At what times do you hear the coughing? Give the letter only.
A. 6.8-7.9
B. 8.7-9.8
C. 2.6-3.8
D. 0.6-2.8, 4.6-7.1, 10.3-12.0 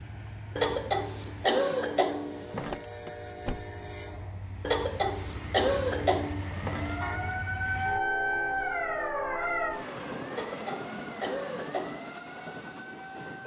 D.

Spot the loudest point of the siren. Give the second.
8 s.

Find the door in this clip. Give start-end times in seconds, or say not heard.
2.6-3.8.